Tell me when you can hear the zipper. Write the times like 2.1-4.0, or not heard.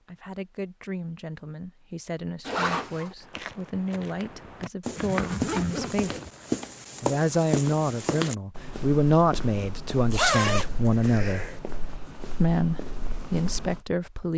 2.5-3.1, 5.0-6.3, 10.1-11.6.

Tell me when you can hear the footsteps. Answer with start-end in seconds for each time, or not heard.
3.2-13.8.